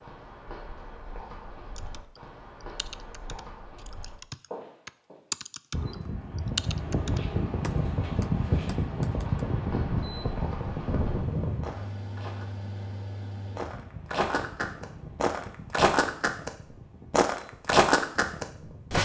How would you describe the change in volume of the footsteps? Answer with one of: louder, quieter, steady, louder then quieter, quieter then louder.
louder.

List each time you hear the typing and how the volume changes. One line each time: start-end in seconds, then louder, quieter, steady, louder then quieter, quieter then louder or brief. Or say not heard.
1.8-9.4 louder then quieter.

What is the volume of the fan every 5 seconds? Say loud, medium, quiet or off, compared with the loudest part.
off, loud, medium, quiet.